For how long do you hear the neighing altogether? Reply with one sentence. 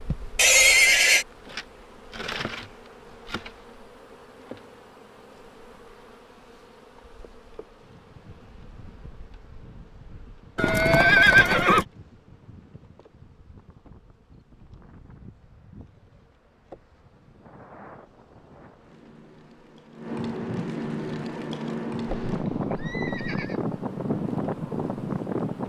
You can hear the neighing for 4 seconds altogether.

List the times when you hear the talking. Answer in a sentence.
You can't hear the talking here.